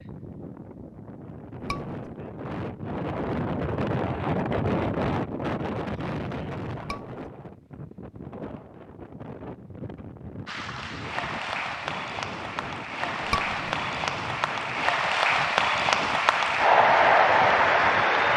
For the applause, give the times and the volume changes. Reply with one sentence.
You can hear the applause from 10.4 to 18.3 s, getting louder.